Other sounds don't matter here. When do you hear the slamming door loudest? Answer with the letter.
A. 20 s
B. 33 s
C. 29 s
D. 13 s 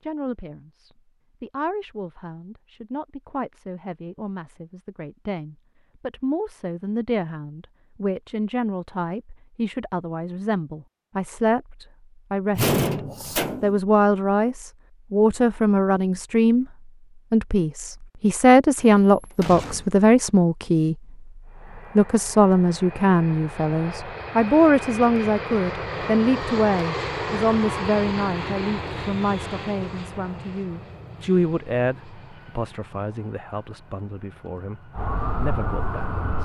D.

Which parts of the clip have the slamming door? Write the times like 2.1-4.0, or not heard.
12.6-13.8, 18.8-20.1.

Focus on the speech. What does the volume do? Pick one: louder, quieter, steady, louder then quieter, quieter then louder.
louder then quieter.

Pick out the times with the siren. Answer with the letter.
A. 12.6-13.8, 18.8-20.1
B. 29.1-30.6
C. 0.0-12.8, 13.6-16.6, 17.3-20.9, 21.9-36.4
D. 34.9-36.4
D.